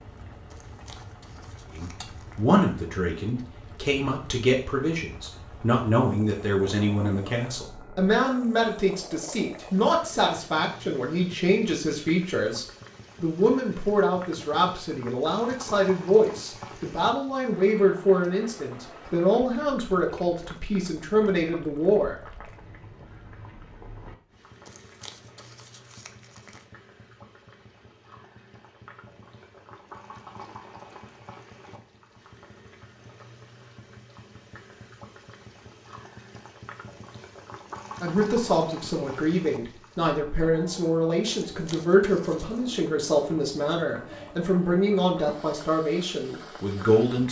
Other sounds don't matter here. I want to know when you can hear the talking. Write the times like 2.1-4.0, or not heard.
1.8-22.1, 38.0-47.2.